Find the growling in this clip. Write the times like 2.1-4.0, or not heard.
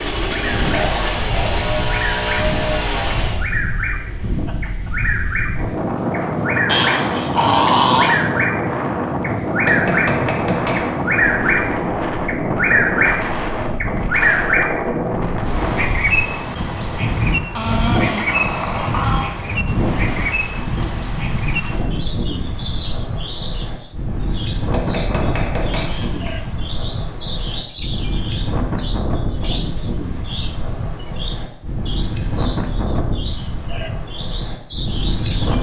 6.7-8.2, 17.6-19.3, 25.9-26.4.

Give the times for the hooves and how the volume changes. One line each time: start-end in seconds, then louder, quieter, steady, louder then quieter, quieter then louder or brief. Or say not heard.
not heard.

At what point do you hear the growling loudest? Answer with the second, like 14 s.
8 s.